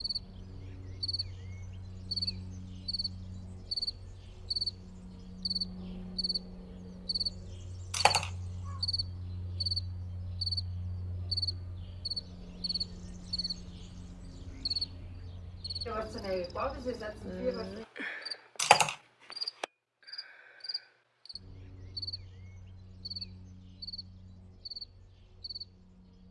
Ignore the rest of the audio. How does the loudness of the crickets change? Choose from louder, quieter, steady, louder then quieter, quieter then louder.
quieter.